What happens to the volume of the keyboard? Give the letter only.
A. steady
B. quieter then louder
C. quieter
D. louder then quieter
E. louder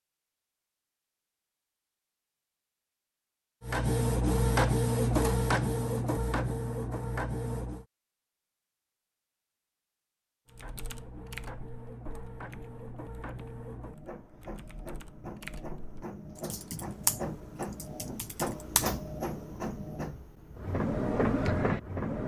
B.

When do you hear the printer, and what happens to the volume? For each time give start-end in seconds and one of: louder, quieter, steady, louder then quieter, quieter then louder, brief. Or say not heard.
3.6-7.8 quieter
10.4-22.2 louder.